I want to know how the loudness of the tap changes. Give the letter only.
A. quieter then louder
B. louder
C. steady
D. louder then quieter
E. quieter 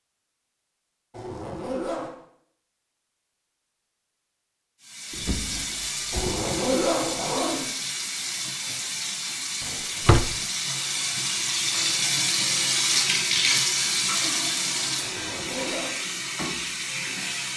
D.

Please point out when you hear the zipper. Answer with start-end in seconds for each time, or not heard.
1.1-2.1, 6.1-7.7, 15.0-15.9.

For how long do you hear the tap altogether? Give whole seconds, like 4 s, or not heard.
13 s.